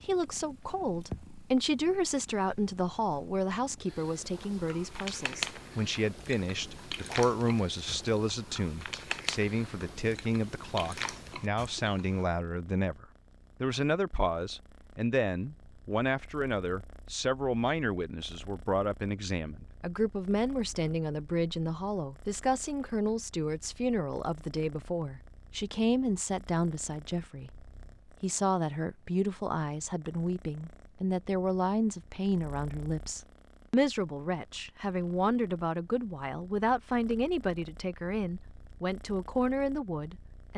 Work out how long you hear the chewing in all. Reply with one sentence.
You can hear the chewing for 8 seconds altogether.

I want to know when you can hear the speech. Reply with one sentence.
The speech can be heard from 0.0 to 27.5 s and from 28.2 to 40.5 s.